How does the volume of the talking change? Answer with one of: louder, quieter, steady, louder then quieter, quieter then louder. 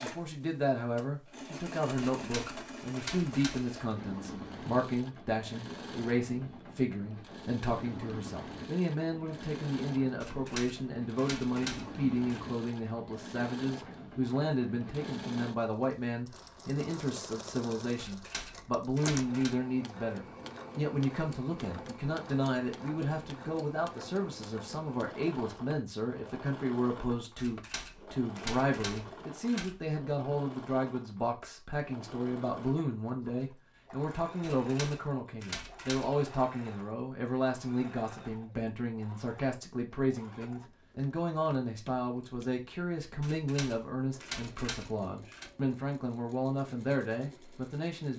steady.